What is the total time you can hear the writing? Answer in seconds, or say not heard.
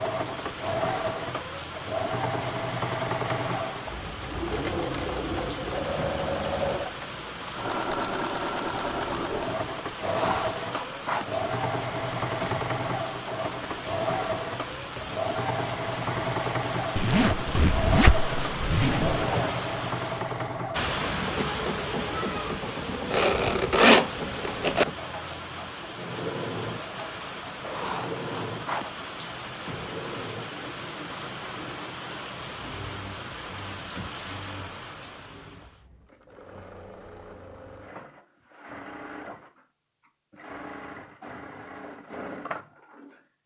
3 s.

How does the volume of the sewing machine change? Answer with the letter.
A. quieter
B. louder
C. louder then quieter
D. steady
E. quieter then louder
A.